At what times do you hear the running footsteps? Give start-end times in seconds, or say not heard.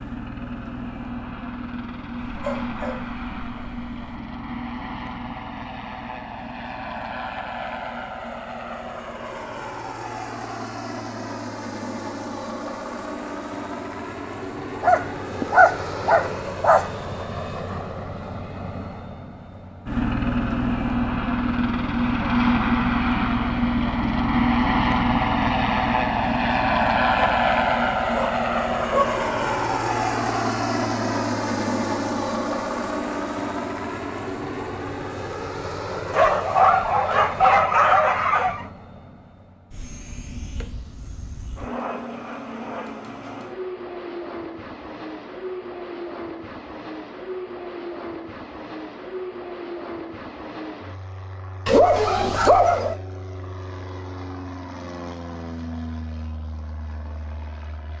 not heard.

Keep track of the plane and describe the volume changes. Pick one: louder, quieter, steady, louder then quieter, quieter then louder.
louder then quieter.